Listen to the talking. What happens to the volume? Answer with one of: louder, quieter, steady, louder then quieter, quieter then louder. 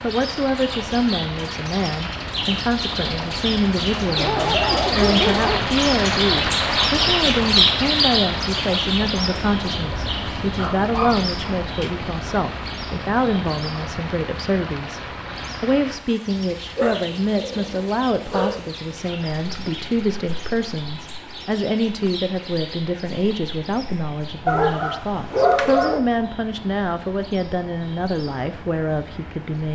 steady.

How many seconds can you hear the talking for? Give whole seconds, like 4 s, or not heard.
29 s.